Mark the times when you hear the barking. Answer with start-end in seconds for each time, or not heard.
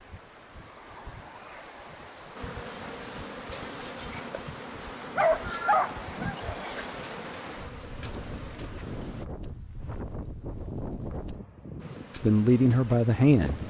5.0-6.8.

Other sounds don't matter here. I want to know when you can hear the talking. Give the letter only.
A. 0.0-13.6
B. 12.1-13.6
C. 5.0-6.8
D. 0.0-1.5
B.